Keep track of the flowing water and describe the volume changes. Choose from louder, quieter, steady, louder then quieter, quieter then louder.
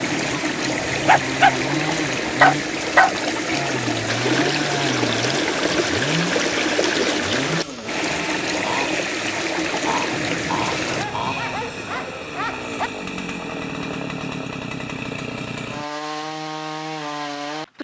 steady.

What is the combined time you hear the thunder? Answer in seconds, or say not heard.
2 s.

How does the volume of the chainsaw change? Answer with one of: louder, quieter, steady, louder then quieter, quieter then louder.
steady.